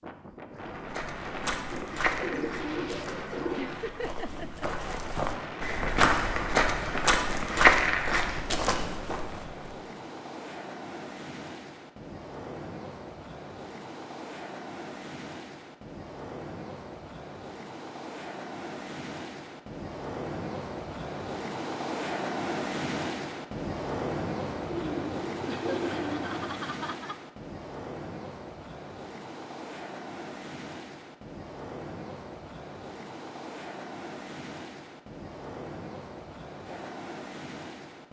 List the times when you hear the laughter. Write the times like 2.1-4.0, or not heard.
3.5-4.7, 25.4-27.1.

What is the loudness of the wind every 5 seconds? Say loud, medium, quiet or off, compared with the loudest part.
medium, medium, medium, medium, loud, medium, medium, medium.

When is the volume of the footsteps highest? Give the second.
8 s.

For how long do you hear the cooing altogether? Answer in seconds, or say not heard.
4 s.